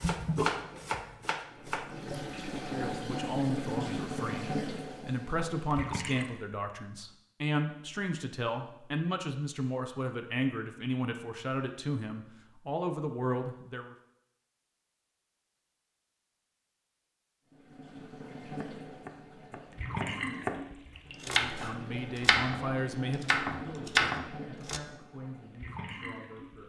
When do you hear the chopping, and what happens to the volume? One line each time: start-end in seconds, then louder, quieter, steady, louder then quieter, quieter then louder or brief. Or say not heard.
0.0-1.9 brief
18.4-24.8 louder.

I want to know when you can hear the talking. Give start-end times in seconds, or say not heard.
2.7-13.9, 21.2-26.6.